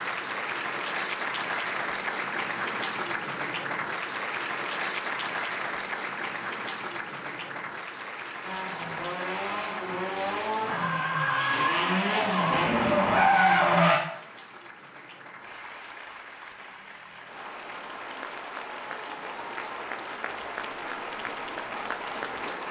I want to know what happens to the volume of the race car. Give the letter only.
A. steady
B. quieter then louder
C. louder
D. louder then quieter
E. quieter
C.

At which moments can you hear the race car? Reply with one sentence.
You can hear the race car from 8.4 to 14.0 s.